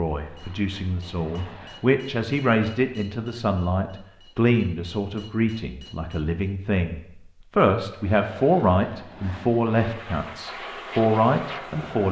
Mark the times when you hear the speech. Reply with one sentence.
The speech can be heard from 0.0 to 12.0 s.